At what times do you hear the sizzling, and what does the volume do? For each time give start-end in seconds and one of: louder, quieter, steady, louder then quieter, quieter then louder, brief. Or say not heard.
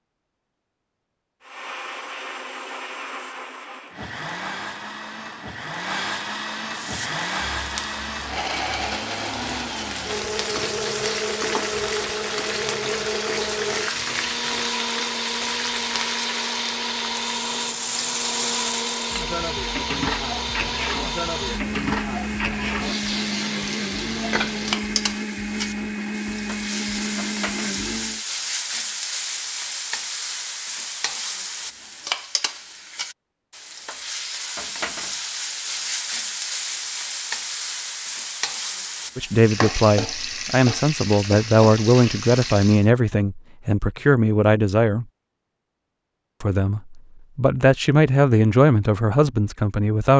6.7-42.9 steady.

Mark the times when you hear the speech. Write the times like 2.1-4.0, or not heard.
39.1-45.0, 46.4-50.1.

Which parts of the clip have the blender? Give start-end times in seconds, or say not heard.
1.4-28.2.